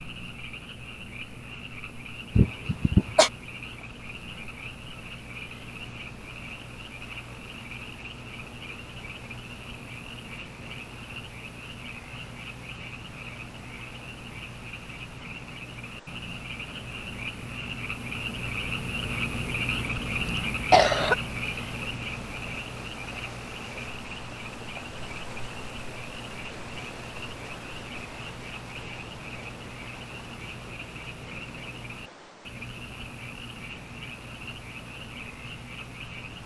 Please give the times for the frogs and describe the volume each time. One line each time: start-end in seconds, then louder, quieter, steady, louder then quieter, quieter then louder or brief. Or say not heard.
0.0-36.4 louder then quieter.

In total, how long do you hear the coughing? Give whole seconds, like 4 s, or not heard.
2 s.